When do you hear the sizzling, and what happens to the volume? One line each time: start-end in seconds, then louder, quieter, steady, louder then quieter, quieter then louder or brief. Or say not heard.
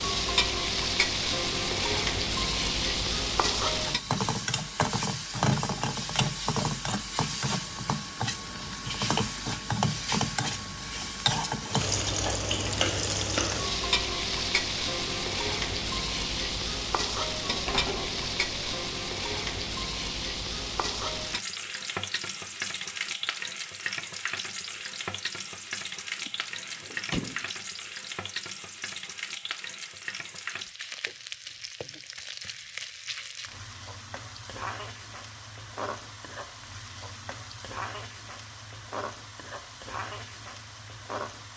0.0-41.5 quieter.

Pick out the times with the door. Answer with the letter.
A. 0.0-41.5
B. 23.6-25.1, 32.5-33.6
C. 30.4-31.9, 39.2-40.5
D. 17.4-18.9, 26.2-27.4
D.